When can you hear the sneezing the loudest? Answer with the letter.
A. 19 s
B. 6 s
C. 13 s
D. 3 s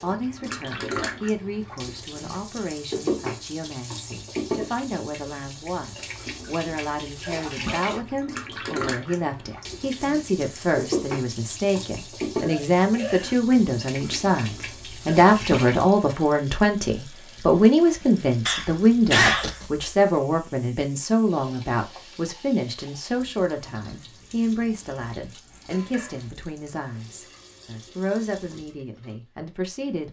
A.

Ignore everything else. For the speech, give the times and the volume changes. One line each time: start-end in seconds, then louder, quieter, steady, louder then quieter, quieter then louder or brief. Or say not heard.
0.0-30.0 louder then quieter.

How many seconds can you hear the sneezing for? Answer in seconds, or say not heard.
2 s.